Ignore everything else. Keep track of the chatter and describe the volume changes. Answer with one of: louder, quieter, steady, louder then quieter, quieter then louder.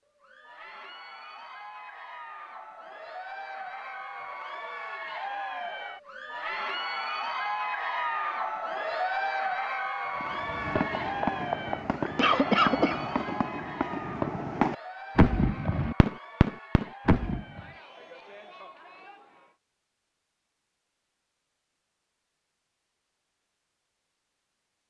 louder then quieter.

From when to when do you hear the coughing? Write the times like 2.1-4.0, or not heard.
12.2-13.1.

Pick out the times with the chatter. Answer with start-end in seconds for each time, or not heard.
0.1-19.6.